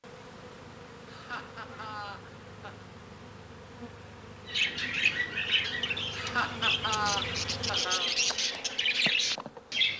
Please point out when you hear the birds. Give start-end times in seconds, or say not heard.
4.5-9.9.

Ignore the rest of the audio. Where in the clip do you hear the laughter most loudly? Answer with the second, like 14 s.
7 s.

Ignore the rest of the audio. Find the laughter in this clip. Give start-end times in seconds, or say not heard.
1.1-2.9, 6.1-8.2.